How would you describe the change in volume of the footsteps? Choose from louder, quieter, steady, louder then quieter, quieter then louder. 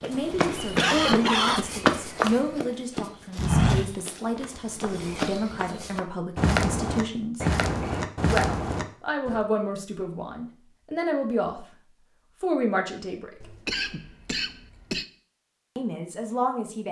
quieter then louder.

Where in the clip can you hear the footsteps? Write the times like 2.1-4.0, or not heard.
0.0-9.4.